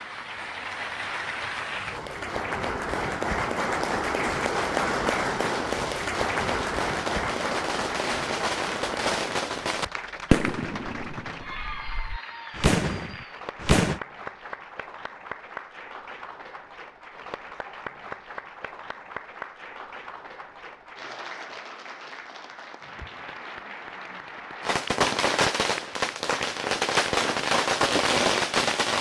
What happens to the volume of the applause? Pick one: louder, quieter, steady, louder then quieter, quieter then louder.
quieter.